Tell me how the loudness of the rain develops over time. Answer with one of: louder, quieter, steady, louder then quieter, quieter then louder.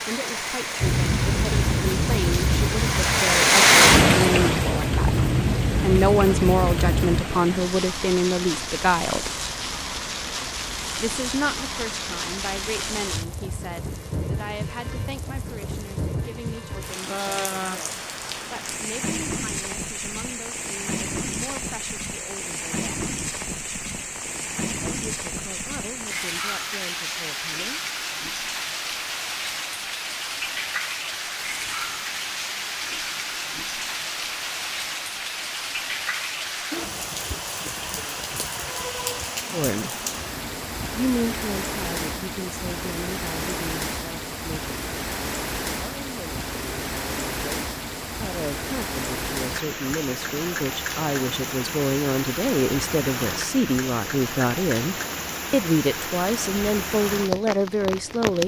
quieter.